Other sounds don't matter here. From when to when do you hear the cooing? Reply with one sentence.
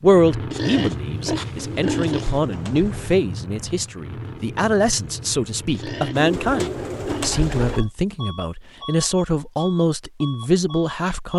You can hear the cooing from 1.6 to 3.1 s and from 6.2 to 7.8 s.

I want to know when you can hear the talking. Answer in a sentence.
The talking can be heard from 0.0 to 11.3 s.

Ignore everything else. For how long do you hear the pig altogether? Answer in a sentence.
You can hear the pig for 4 seconds altogether.